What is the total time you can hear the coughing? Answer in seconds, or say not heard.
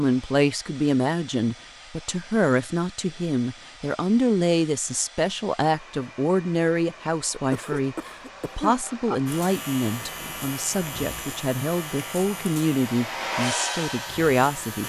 2 s.